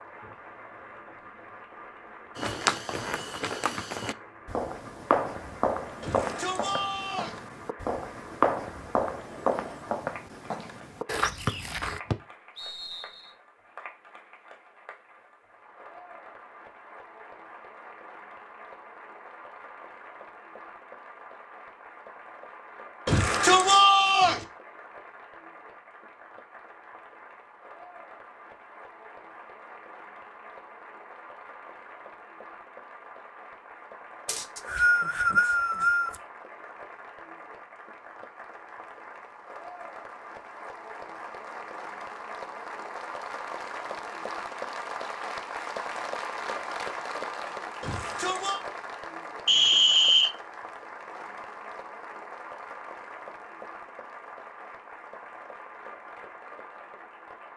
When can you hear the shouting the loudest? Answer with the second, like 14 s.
24 s.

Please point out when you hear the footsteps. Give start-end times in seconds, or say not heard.
2.4-12.0.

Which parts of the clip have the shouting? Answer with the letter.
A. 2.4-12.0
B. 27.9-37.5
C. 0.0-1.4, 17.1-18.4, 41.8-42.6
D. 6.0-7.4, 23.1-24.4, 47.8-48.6
D.